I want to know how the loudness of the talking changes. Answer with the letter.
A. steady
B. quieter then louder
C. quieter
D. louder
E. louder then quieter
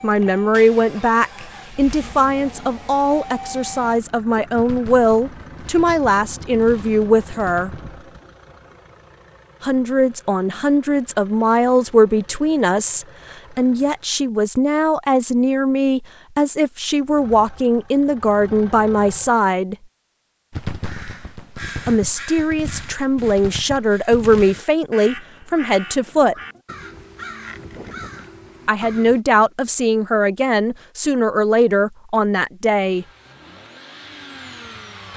A.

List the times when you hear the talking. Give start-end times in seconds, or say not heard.
0.0-7.7, 9.6-19.8, 21.9-26.4, 28.6-33.0.